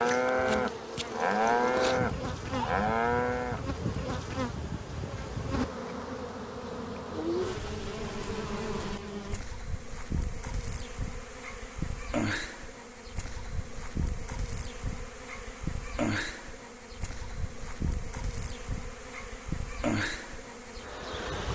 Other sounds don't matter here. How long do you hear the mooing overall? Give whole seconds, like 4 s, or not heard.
4 s.